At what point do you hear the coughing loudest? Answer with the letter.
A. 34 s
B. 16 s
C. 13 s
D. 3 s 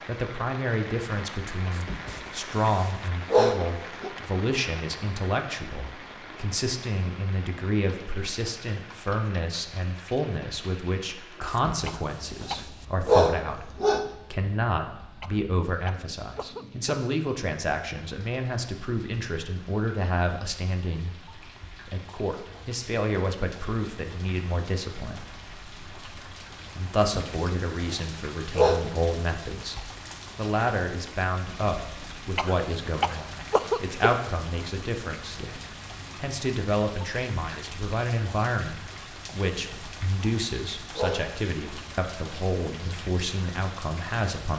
A.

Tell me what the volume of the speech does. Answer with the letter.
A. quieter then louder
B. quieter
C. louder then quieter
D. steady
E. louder
D.